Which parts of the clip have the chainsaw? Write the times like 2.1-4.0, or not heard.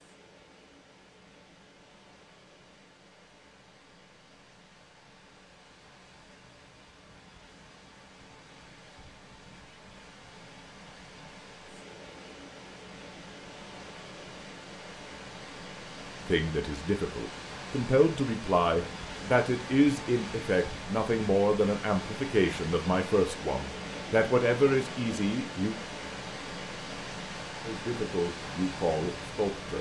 not heard.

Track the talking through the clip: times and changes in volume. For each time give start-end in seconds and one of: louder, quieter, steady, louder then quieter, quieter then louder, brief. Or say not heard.
16.2-25.8 steady
27.6-29.7 brief.